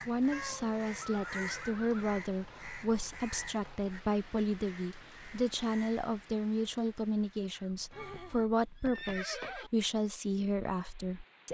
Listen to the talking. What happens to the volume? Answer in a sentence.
The loudness of the talking stays about the same.